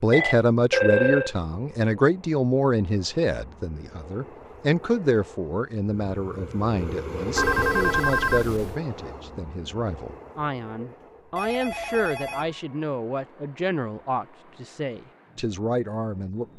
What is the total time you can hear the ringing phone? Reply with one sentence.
The ringing phone can be heard for 4 seconds in total.